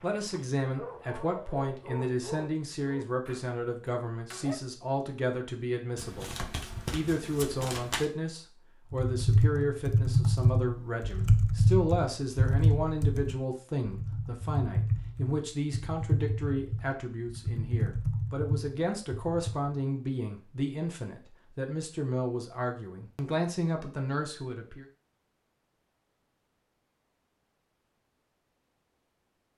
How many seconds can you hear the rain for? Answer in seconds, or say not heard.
not heard.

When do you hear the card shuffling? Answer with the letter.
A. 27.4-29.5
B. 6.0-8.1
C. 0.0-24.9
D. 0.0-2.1
B.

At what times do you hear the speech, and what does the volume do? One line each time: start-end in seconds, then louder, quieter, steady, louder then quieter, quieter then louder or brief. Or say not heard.
0.0-24.9 steady.